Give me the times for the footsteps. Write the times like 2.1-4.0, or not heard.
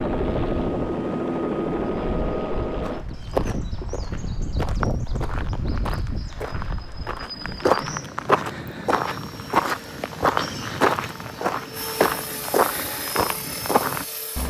2.8-14.1.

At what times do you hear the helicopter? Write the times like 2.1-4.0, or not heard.
0.0-3.0, 8.9-14.4.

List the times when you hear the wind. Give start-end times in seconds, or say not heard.
0.1-11.6.